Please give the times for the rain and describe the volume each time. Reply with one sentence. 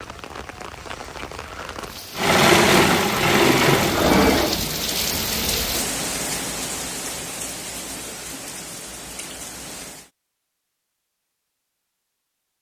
The rain can be heard from 0.0 to 10.1 s, getting louder then quieter.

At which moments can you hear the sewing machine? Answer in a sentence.
The sewing machine can be heard from 2.1 to 5.7 s.